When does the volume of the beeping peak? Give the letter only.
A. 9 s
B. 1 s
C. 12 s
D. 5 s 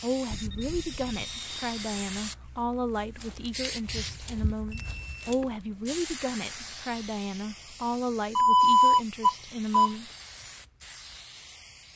A.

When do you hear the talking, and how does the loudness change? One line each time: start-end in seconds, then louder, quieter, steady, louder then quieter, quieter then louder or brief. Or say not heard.
0.0-10.1 steady.